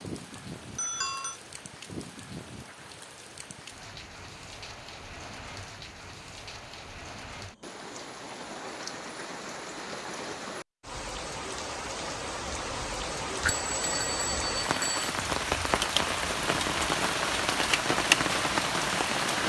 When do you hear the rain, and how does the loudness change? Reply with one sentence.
You can hear the rain from 0.0 to 19.4 s, getting louder.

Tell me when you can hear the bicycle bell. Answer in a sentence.
The bicycle bell can be heard from 0.3 to 1.4 s and from 13.4 to 15.1 s.